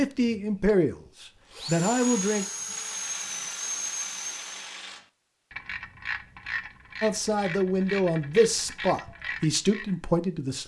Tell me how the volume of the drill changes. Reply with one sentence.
The loudness of the drill goes up.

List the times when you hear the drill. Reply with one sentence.
You can hear the drill from 0.2 to 4.7 s.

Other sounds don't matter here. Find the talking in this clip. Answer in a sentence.
You can hear the talking from 0.0 to 2.5 s and from 7.0 to 10.6 s.